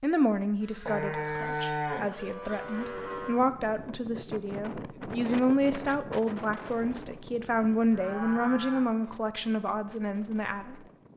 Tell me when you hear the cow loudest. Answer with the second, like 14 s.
2 s.